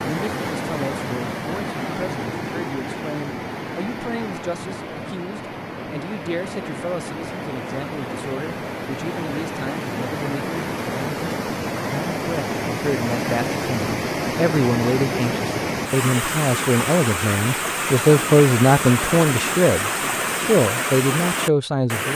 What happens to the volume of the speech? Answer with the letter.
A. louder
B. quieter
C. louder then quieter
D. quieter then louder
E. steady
A.